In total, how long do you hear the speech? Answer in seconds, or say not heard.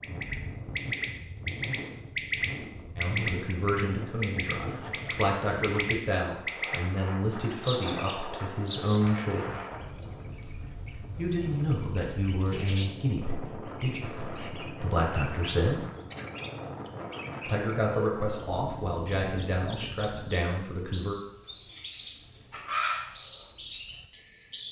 15 s.